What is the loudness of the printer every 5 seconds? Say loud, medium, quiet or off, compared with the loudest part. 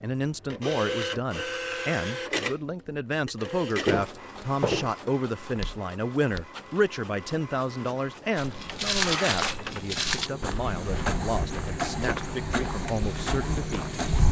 loud, medium, loud.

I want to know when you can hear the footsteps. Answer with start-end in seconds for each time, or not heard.
3.8-6.5, 8.3-14.2.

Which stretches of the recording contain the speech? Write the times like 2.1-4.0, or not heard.
0.0-14.0.